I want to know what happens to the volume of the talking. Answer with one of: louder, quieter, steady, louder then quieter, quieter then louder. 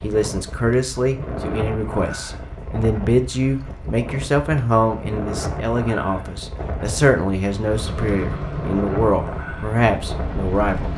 steady.